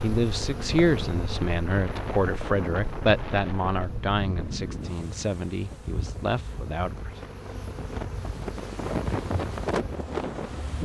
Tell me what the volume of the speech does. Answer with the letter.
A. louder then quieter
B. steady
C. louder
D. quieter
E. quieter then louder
D.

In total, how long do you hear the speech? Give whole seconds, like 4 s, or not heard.
7 s.